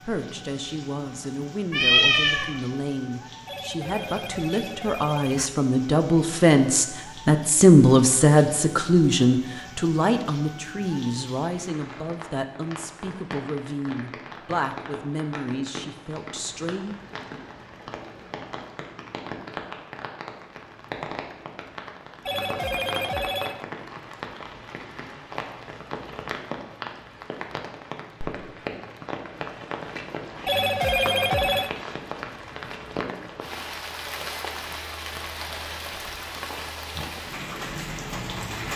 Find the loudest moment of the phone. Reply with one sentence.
The loudest moment of the phone is at 31 seconds.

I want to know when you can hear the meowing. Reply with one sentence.
You can hear the meowing from 1.7 to 2.5 s.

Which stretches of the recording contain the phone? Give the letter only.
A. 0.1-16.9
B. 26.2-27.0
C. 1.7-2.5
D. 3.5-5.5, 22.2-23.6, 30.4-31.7
D.